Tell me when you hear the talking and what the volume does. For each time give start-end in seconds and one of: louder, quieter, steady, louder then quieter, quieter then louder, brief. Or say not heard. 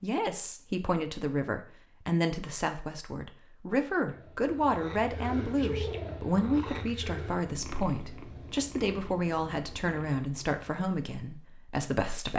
0.0-12.3 steady.